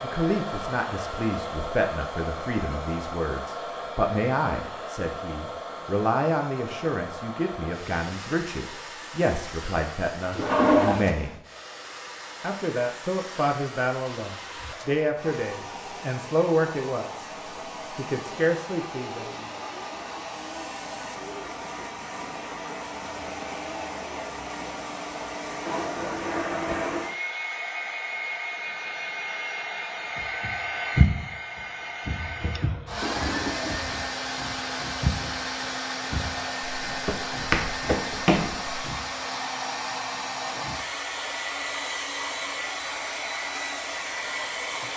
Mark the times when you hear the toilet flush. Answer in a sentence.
The toilet flush can be heard from 10.3 to 11.1 s, from 25.6 to 27.1 s and from 32.2 to 33.9 s.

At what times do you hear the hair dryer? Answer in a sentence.
You can hear the hair dryer from 0.0 to 44.9 s.